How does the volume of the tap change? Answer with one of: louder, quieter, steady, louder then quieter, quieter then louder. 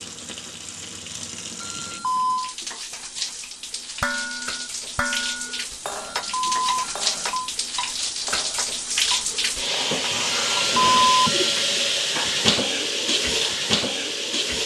louder.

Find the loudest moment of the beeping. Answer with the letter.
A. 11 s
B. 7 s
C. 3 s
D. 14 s
A.